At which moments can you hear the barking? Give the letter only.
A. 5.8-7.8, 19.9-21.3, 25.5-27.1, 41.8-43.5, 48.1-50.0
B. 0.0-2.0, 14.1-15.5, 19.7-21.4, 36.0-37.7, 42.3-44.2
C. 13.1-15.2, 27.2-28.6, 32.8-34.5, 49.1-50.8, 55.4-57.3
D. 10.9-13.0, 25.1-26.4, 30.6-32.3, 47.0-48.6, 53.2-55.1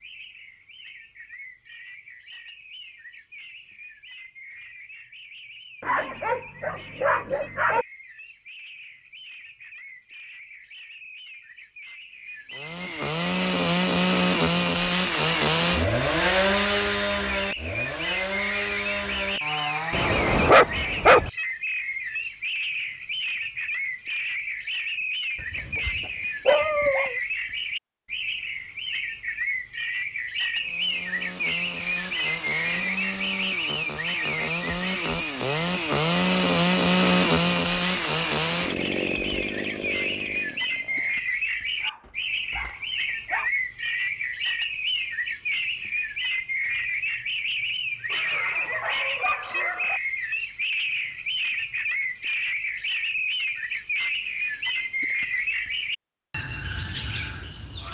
A.